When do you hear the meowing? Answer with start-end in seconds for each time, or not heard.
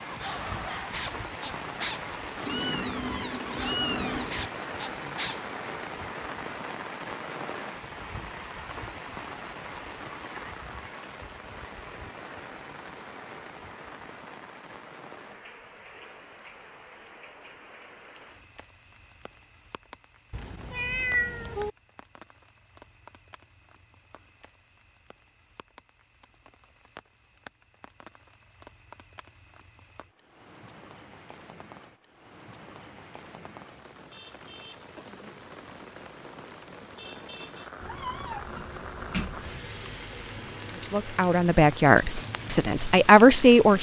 2.5-4.5, 20.3-21.7, 37.8-39.6.